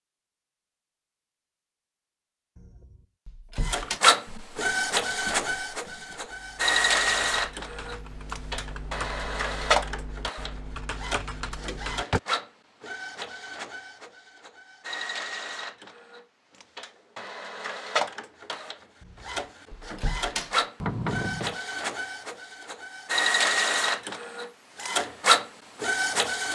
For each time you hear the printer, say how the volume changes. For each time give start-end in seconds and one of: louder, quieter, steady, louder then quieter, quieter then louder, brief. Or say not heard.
3.6-26.5 quieter then louder.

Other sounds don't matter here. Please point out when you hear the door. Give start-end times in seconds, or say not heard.
2.5-4.0, 11.5-12.2, 19.0-21.6.